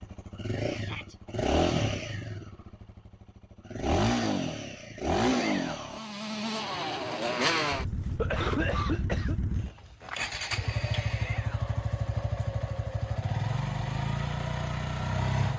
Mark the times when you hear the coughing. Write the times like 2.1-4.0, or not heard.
7.8-9.3.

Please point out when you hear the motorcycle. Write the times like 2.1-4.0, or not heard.
0.0-15.5.